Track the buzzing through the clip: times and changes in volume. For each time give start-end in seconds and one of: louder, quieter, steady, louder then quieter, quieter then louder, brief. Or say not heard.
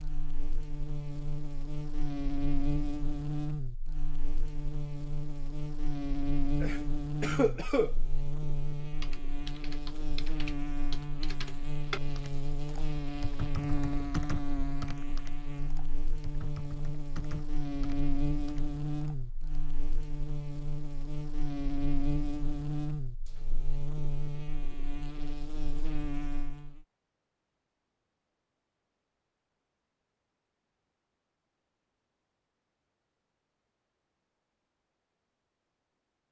0.0-26.8 steady.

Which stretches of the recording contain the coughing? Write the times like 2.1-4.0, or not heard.
6.6-8.0.